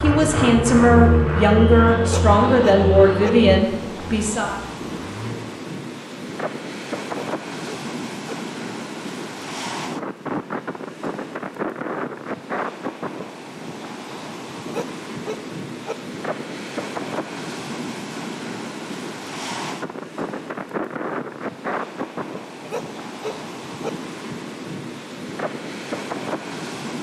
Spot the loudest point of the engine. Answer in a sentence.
The loudest moment of the engine is at 1 second.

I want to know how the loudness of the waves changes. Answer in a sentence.
The loudness of the waves stays about the same.